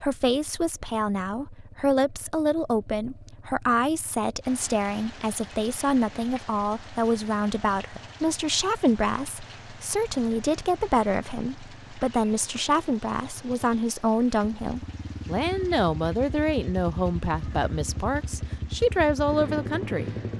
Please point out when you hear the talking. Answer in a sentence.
The talking can be heard from 0.0 to 20.1 s.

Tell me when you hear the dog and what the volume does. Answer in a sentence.
You can't hear the dog here.